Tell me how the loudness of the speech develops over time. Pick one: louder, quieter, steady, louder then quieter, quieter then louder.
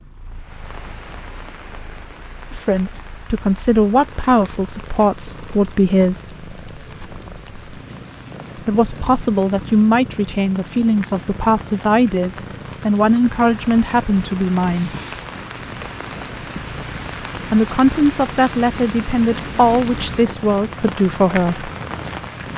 steady.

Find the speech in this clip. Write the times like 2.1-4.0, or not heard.
2.5-6.2, 8.6-14.9, 17.4-21.7.